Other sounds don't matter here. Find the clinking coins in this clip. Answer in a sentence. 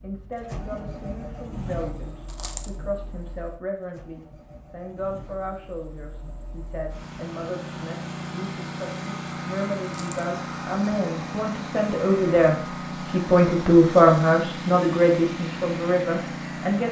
You can hear the clinking coins from 2.2 to 2.7 s and from 9.8 to 10.2 s.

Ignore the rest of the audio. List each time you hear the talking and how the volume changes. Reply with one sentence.
The talking can be heard from 0.0 to 16.8 s, getting louder.